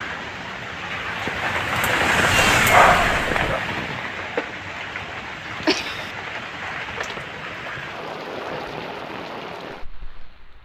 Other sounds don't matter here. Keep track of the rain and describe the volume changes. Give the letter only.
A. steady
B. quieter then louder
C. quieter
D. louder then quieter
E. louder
C.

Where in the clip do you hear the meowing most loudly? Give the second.
3 s.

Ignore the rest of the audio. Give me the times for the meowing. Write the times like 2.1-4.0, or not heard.
2.3-3.6, 5.7-6.1.